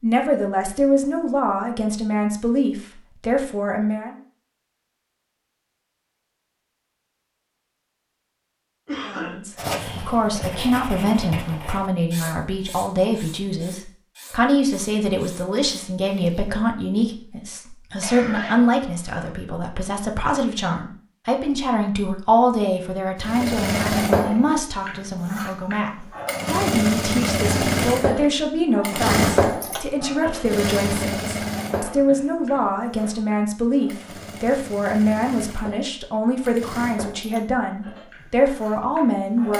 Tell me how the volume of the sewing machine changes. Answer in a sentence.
The loudness of the sewing machine goes down.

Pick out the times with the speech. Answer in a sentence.
The speech can be heard from 0.0 to 4.2 s and from 9.0 to 39.5 s.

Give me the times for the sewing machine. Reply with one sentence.
You can hear the sewing machine from 23.2 to 39.5 s.